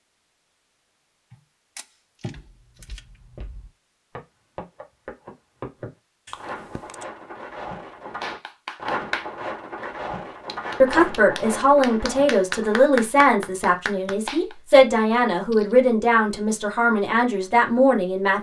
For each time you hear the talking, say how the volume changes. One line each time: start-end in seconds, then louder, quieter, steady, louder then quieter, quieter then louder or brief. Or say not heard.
10.8-18.3 steady.